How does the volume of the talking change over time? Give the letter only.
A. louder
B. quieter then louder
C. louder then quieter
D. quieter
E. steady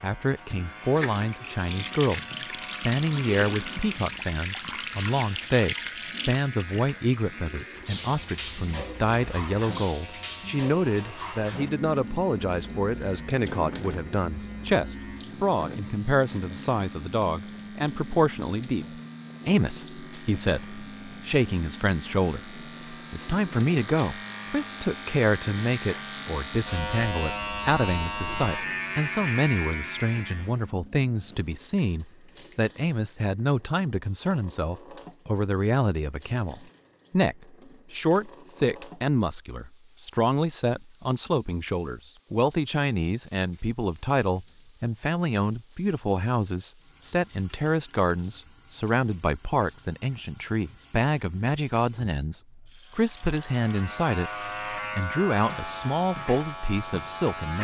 E.